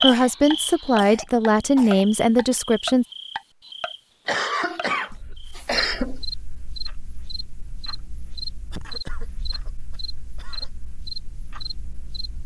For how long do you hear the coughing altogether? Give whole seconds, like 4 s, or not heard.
6 s.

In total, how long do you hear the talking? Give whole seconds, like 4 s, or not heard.
3 s.